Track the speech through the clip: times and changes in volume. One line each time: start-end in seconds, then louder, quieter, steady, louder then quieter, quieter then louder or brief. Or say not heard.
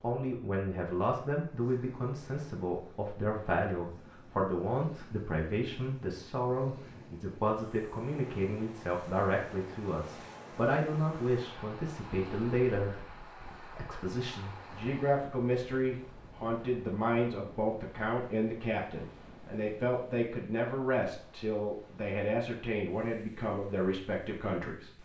0.0-25.0 steady.